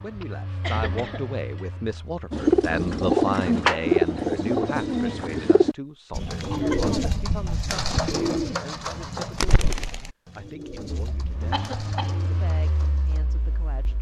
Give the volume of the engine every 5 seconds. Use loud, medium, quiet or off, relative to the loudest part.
loud, off, loud.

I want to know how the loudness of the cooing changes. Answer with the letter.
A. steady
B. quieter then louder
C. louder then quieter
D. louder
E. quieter
E.